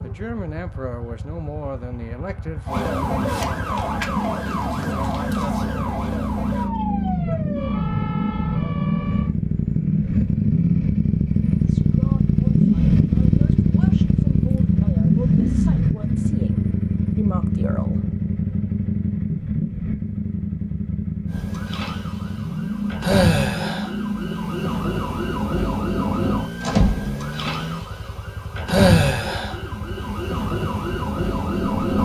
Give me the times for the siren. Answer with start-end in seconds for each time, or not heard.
2.6-9.3, 21.2-31.9.